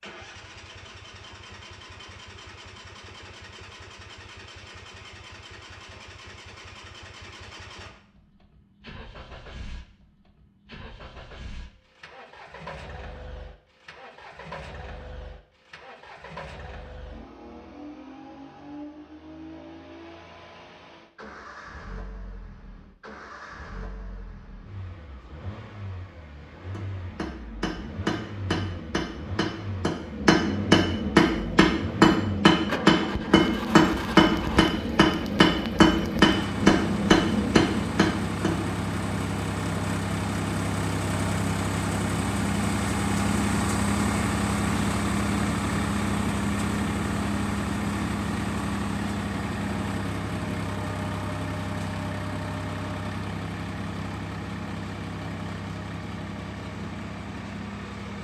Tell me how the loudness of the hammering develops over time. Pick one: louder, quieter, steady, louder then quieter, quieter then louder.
louder.